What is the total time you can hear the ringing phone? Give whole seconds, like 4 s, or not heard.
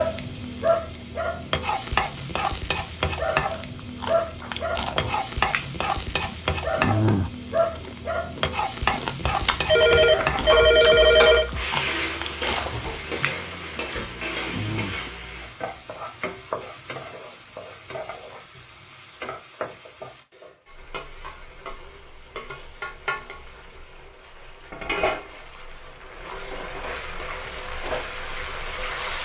2 s.